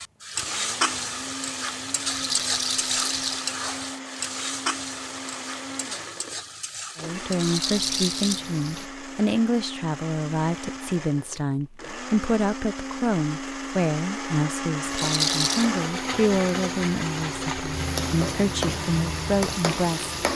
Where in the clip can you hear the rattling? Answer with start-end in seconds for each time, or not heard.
2.0-3.5, 7.3-8.4, 14.9-15.7.